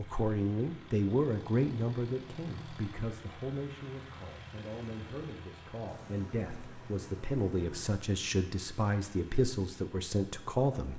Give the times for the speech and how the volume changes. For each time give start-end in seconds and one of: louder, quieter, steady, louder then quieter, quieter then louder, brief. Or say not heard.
0.0-10.9 quieter then louder.